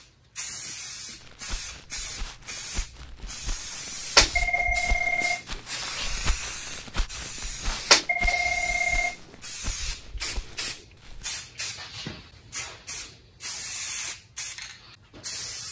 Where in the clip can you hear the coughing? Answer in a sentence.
The coughing can't be heard in this clip.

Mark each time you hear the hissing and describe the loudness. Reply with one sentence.
The hissing can be heard from 0.0 to 15.6 s, at a steady volume.